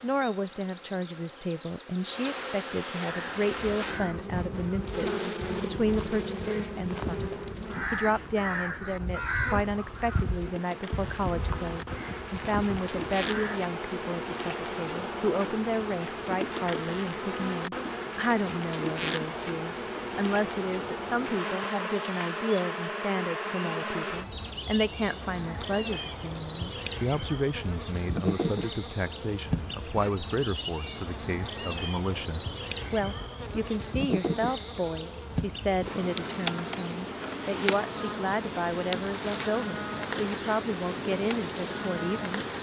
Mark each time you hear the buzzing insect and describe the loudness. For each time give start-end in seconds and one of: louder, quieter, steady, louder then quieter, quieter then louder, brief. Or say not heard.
0.0-42.5 steady.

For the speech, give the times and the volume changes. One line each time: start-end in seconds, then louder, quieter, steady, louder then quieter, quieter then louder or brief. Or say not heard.
0.0-42.5 steady.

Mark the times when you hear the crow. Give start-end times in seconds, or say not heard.
3.0-13.6.